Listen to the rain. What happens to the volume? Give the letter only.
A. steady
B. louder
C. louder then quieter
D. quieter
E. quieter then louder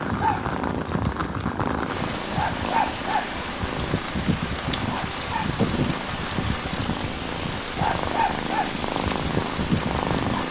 A.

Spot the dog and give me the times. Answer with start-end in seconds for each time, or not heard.
0.0-10.4.